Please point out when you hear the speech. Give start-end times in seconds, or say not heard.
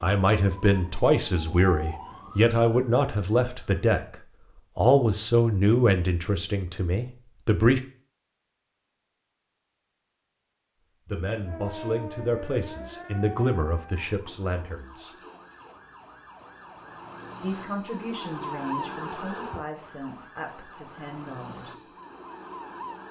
0.0-4.2, 4.8-7.8, 11.1-15.1, 17.4-21.9.